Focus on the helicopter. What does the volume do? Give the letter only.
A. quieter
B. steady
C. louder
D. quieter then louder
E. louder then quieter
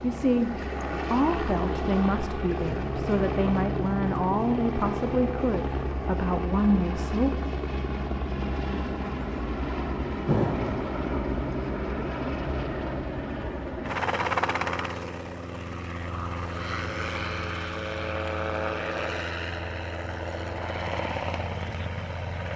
B.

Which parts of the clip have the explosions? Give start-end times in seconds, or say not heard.
10.2-10.9.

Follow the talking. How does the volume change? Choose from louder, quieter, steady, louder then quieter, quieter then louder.
steady.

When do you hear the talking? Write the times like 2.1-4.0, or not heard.
0.0-7.4.